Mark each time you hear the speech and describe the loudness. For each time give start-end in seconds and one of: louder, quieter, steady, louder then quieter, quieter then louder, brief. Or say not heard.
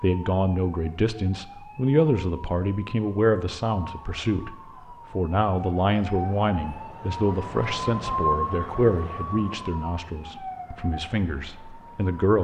0.0-12.4 quieter.